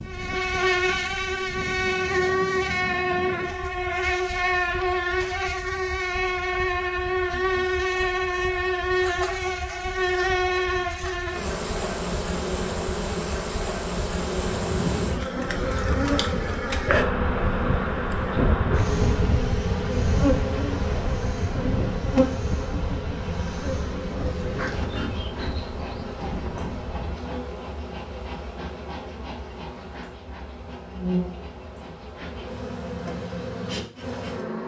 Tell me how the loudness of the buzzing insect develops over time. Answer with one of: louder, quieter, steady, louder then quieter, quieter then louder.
quieter.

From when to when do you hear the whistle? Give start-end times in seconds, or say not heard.
not heard.